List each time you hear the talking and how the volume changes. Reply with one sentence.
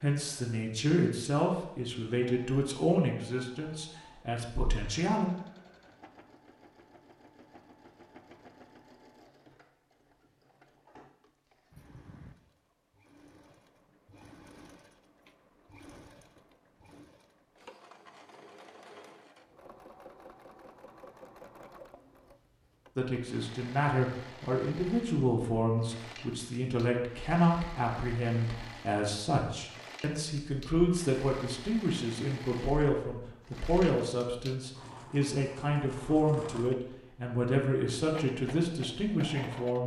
The talking can be heard from 0.0 to 5.2 s, getting quieter; and from 22.9 to 39.8 s, at a steady volume.